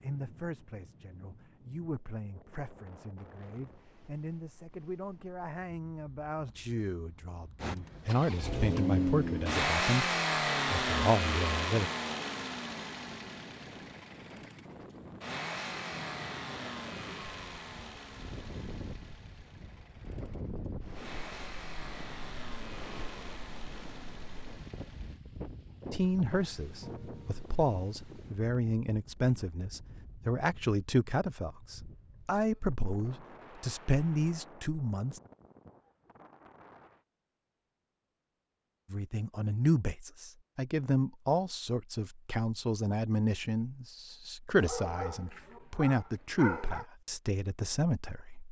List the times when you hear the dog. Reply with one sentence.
The dog can be heard from 44.5 to 46.9 s.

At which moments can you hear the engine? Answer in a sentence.
The engine can be heard from 7.6 to 25.2 s.